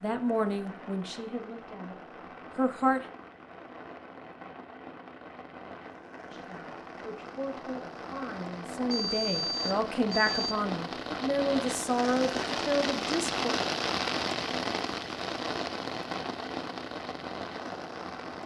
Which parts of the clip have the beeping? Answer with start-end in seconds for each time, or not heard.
8.9-10.6.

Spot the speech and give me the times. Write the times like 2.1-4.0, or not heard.
0.0-3.0, 6.3-13.6.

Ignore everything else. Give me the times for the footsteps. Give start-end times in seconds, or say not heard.
not heard.